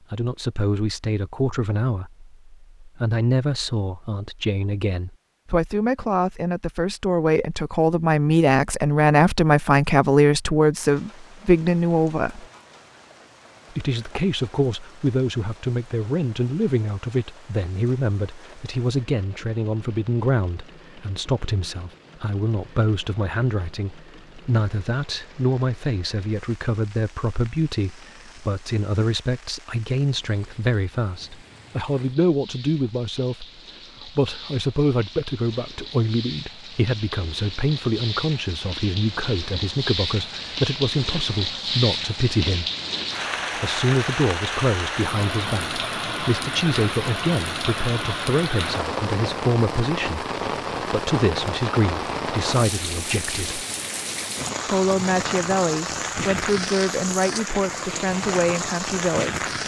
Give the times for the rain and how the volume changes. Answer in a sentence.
The rain can be heard from 10.8 to 59.6 s, getting louder.